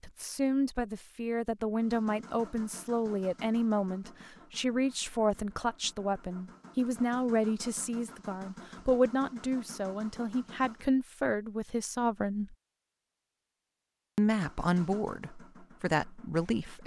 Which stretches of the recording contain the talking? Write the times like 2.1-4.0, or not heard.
0.0-12.6, 14.2-16.8.